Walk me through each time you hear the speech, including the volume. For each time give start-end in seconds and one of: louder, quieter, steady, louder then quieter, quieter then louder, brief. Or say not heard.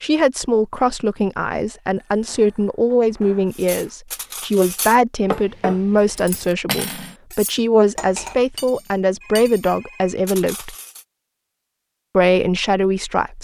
0.0-10.8 steady
12.2-13.4 brief.